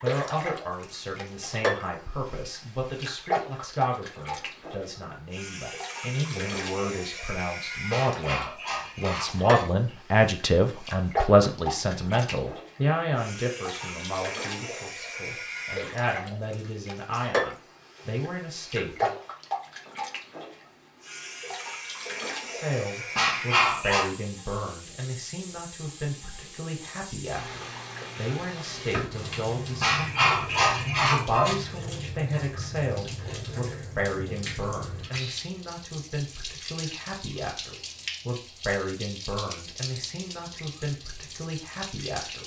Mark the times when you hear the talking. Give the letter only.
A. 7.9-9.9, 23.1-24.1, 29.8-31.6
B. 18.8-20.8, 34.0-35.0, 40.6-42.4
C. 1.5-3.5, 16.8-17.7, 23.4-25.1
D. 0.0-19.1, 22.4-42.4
D.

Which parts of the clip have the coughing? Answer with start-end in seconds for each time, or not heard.
7.9-9.9, 23.1-24.1, 29.8-31.6.